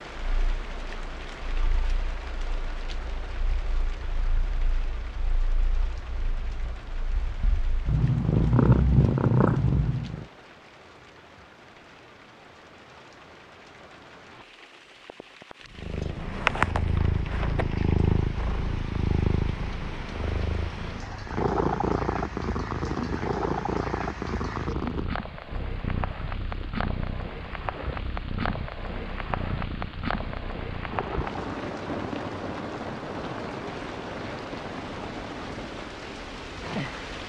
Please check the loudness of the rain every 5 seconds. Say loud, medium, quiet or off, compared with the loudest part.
medium, quiet, quiet, medium, medium, loud, loud, loud.